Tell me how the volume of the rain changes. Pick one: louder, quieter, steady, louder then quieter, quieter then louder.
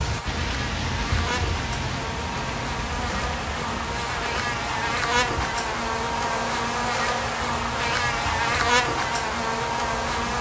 quieter.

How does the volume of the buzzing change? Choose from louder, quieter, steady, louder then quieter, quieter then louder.
louder.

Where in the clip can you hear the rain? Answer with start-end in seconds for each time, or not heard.
0.0-10.3.